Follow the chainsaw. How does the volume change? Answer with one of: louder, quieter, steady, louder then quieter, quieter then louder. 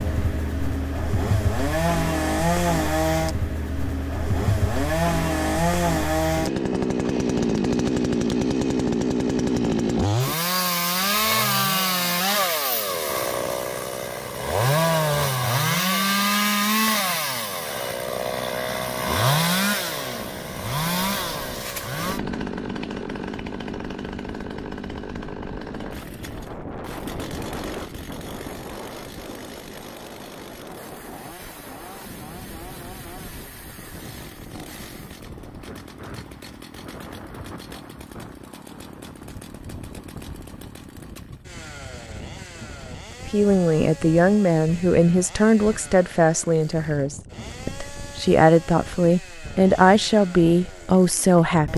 quieter.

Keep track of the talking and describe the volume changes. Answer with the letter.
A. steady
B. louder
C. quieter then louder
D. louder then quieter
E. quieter
C.